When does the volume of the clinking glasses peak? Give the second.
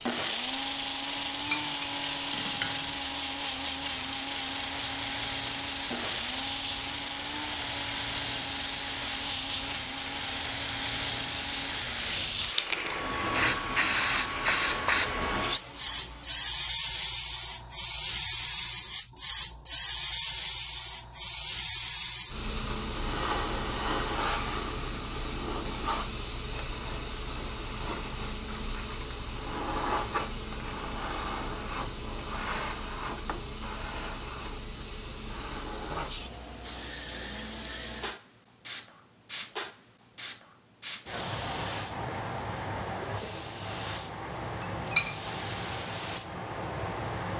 45 s.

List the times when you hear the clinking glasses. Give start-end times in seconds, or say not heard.
1.1-3.0, 44.6-45.2.